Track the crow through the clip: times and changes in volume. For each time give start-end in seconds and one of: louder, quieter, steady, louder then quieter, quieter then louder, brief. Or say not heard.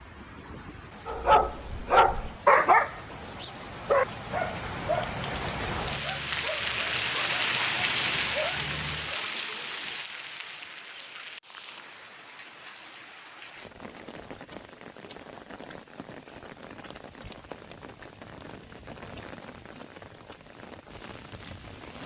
not heard.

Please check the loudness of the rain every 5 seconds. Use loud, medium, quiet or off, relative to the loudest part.
quiet, loud, quiet, quiet, quiet.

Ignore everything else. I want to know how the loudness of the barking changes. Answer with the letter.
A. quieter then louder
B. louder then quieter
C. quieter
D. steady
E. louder
C.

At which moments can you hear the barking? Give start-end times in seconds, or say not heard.
1.1-9.2.